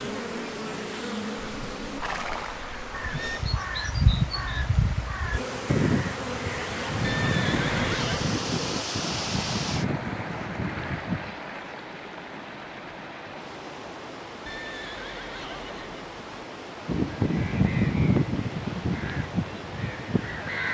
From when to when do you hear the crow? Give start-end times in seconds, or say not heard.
2.9-11.3, 16.9-20.6.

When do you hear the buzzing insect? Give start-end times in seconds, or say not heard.
0.0-2.0, 5.3-8.8.